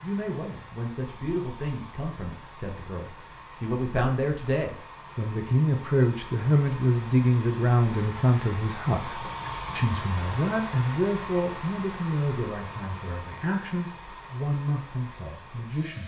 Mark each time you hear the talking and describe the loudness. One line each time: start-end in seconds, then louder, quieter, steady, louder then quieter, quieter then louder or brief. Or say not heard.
0.0-16.0 louder then quieter.